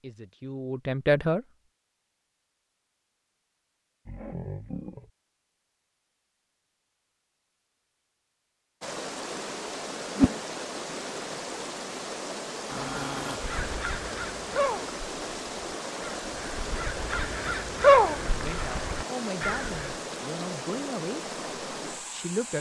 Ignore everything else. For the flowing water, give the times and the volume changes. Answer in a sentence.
The flowing water can be heard from 8.8 to 22.5 s, at a steady volume.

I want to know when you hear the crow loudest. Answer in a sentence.
The loudest moment of the crow is at 18 seconds.